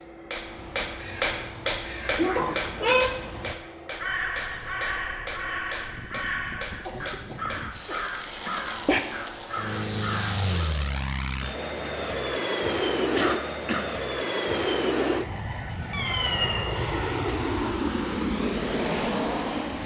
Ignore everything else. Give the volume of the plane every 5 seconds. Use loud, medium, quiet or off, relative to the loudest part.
quiet, medium, loud, loud.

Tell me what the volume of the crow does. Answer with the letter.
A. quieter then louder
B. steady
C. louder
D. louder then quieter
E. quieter
C.